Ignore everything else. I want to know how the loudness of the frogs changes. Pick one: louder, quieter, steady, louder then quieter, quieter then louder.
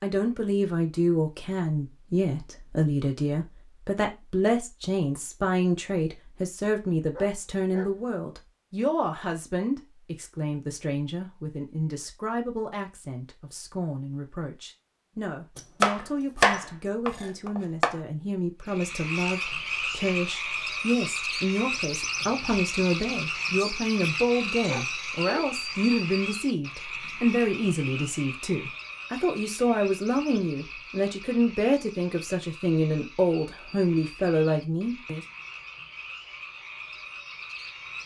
quieter.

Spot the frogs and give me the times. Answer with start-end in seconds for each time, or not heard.
18.6-38.0.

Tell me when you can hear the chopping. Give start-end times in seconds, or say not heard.
15.6-17.9.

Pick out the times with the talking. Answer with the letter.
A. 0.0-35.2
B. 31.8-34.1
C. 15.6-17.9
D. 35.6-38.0
A.